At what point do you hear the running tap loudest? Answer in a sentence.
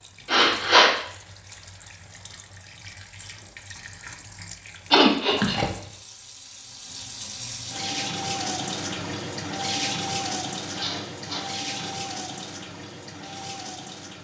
The loudest moment of the running tap is at 10 seconds.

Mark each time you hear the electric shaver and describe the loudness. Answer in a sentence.
The electric shaver can't be heard in this clip.